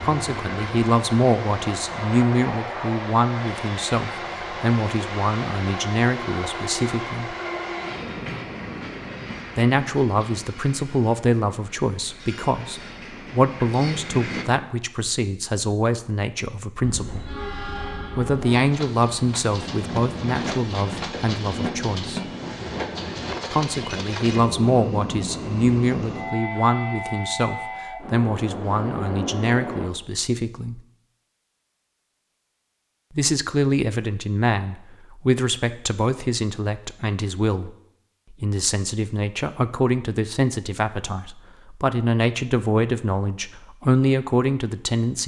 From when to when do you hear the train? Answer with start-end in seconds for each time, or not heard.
0.0-14.4, 16.8-29.9.